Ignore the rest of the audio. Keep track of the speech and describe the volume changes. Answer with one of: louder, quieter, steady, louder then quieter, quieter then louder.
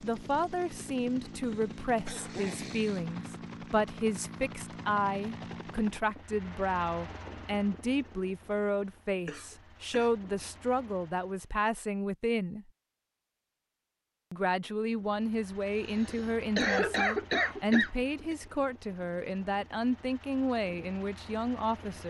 steady.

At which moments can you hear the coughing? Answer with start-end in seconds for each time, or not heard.
1.4-3.3, 9.2-10.2, 15.9-18.4.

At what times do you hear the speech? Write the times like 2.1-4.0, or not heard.
0.0-12.7, 14.3-22.0.